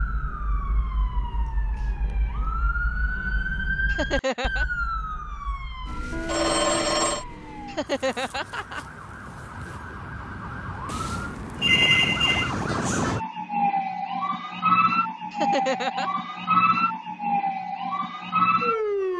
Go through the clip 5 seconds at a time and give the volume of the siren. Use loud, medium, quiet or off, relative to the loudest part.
medium, quiet, loud, loud.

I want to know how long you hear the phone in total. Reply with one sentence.
You can hear the phone for 2 seconds altogether.